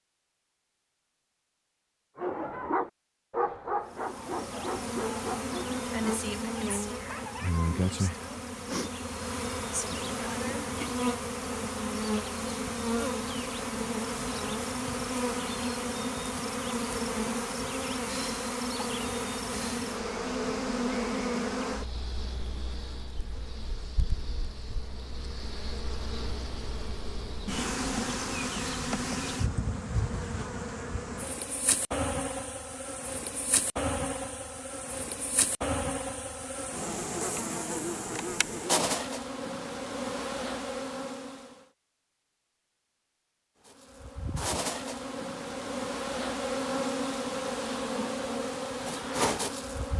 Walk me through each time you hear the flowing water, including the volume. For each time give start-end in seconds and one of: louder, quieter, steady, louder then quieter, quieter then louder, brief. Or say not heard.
not heard.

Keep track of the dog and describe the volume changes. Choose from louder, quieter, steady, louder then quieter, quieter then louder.
quieter.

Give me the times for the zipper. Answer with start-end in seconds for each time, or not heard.
not heard.